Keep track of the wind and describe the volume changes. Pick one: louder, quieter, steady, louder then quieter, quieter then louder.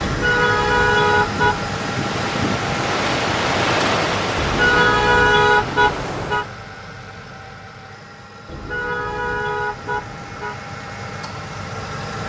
louder then quieter.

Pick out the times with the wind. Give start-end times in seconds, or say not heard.
0.0-6.6.